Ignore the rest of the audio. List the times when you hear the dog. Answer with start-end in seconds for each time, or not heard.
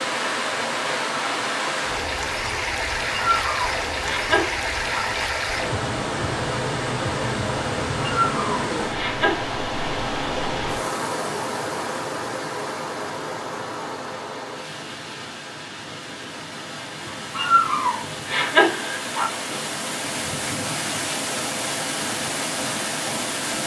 3.1-5.0, 8.0-9.5, 17.3-19.3.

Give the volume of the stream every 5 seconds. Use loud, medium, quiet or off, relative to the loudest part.
loud, loud, loud, medium, loud.